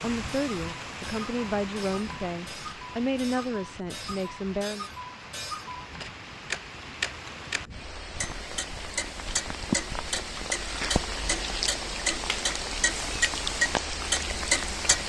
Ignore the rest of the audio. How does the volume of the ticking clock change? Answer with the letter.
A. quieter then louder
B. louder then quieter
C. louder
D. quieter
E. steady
C.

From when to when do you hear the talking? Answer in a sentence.
You can hear the talking from 0.0 to 4.8 s.